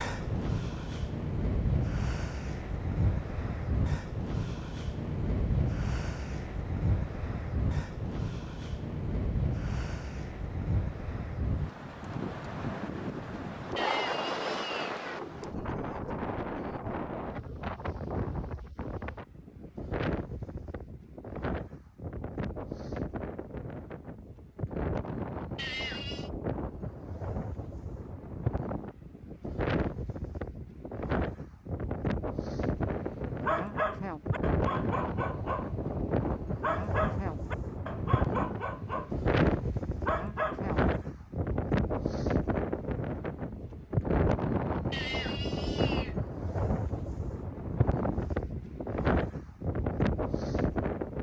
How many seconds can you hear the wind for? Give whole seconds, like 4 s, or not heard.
51 s.